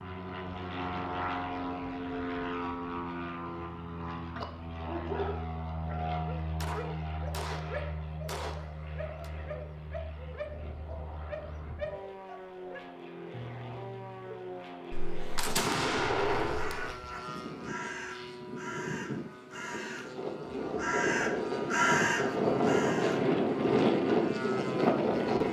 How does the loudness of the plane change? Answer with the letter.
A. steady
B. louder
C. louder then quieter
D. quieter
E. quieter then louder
E.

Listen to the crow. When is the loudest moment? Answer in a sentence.
The loudest moment of the crow is at 22 seconds.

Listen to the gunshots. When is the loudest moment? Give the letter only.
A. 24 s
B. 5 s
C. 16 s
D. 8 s
C.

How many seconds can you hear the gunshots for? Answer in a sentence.
You can hear the gunshots for 5 seconds altogether.